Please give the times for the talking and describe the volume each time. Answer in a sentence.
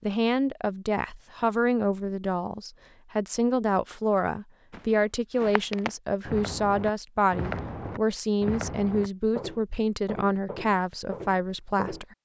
You can hear the talking from 0.0 to 12.1 s, at a steady volume.